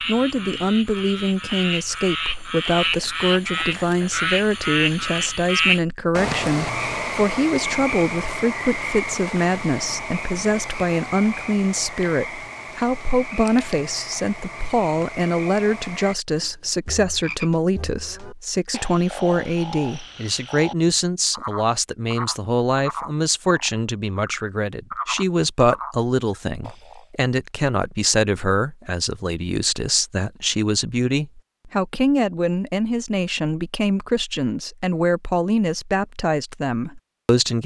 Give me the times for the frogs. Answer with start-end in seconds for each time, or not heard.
0.0-27.1.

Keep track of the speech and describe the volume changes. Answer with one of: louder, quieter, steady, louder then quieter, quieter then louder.
steady.